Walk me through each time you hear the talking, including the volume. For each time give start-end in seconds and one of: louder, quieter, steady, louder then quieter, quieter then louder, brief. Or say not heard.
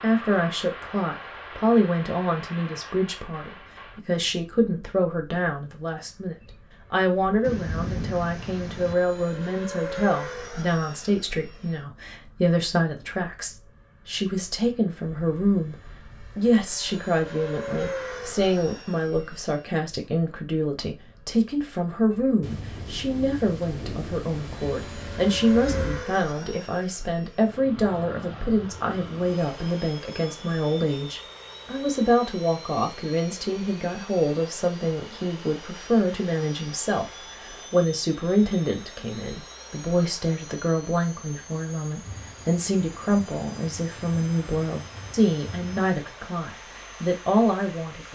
0.0-48.1 steady.